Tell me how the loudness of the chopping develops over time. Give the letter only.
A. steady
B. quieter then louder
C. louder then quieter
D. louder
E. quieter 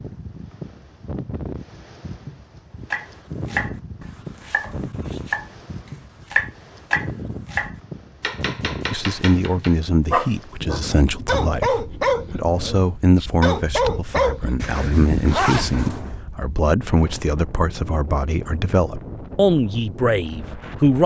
C.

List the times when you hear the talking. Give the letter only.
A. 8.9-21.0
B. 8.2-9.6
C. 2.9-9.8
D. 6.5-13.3
A.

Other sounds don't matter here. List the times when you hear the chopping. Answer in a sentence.
You can hear the chopping from 2.9 to 9.8 s.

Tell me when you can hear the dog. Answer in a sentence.
You can hear the dog from 10.1 to 16.2 s.